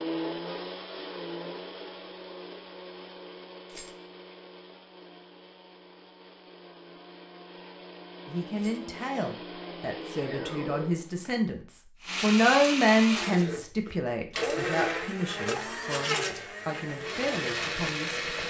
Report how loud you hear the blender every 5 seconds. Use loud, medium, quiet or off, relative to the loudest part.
medium, quiet, loud, loud.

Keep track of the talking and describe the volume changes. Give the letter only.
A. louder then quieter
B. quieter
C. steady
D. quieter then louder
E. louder
A.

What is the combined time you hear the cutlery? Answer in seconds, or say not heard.
not heard.